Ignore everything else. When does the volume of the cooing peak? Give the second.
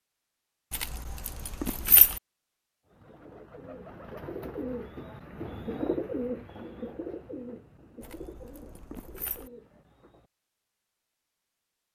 6 s.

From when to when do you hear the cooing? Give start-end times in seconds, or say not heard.
2.9-10.3.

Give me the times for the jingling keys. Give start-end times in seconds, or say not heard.
0.7-2.2, 8.0-9.5.